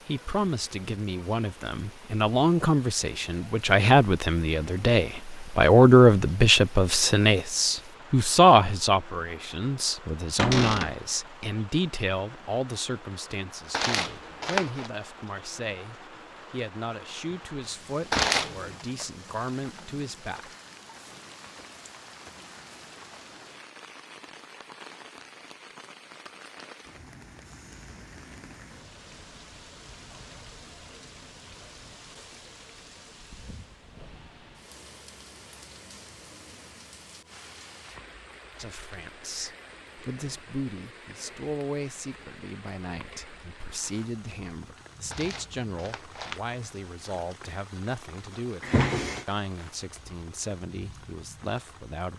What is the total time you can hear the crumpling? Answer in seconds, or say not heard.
3 s.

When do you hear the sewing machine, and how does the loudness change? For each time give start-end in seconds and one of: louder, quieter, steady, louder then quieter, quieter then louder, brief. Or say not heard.
not heard.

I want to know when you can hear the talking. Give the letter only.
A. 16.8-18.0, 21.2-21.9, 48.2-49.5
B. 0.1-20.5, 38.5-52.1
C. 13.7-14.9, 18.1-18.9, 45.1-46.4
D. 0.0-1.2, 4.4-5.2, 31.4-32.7
B.